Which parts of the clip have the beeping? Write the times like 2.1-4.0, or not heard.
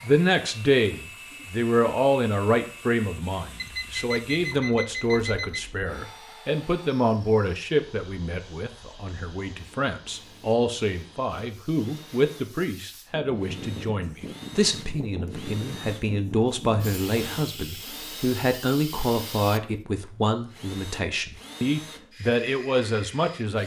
3.5-5.6, 16.8-17.4.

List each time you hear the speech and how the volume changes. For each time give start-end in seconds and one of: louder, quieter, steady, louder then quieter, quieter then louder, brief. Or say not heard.
0.0-23.6 steady.